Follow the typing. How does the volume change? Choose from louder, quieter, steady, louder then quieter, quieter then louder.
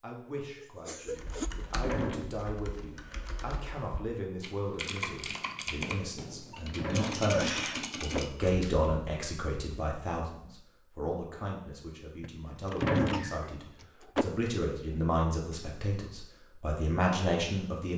louder.